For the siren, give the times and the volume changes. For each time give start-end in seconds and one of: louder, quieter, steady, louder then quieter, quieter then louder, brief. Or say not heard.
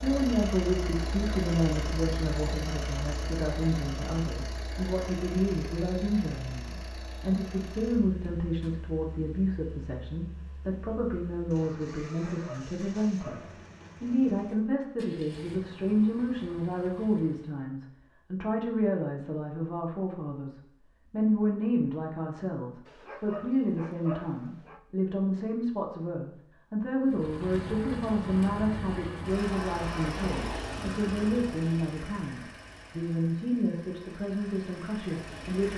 not heard.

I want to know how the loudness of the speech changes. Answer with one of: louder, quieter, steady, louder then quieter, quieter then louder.
steady.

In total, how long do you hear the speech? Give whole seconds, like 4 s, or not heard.
35 s.